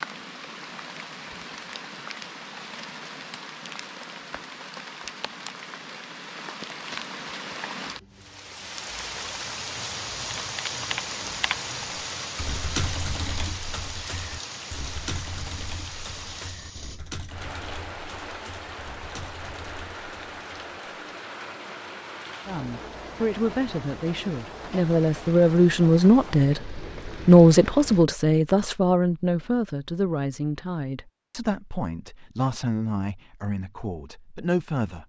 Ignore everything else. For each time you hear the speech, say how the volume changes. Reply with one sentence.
You can hear the speech from 22.4 to 35.0 s, getting louder then quieter.